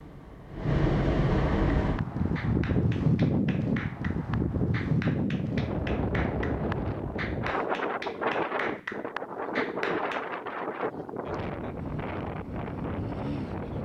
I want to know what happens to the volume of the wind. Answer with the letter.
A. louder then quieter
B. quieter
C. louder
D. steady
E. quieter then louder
B.